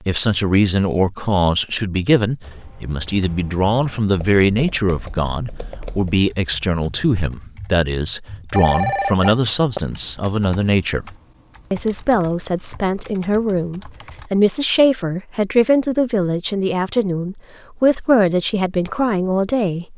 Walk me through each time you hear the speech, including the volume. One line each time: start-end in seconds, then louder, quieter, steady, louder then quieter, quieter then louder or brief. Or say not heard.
0.0-19.9 steady.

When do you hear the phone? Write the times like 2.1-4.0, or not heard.
8.5-9.8.